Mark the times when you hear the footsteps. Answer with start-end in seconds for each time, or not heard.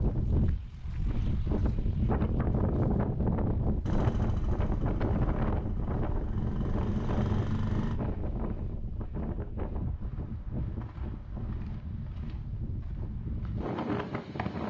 not heard.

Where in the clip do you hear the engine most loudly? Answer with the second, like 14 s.
7 s.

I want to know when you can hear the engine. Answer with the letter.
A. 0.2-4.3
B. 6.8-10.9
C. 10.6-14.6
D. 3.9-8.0
D.